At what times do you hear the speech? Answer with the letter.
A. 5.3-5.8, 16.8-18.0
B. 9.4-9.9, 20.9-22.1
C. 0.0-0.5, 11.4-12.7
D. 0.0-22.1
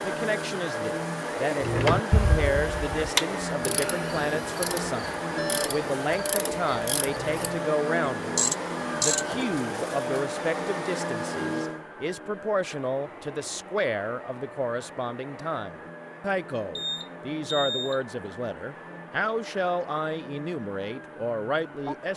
D.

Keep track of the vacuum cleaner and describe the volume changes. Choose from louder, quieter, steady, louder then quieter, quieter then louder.
quieter.